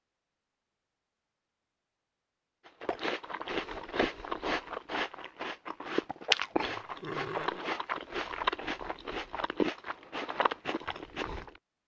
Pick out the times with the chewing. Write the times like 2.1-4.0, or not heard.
2.6-11.5.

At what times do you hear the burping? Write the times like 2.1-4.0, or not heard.
6.6-7.7.